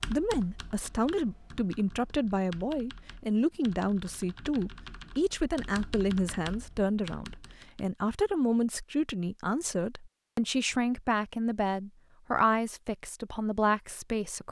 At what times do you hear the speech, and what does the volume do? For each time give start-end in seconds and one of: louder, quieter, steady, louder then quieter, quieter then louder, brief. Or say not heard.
0.0-14.4 steady.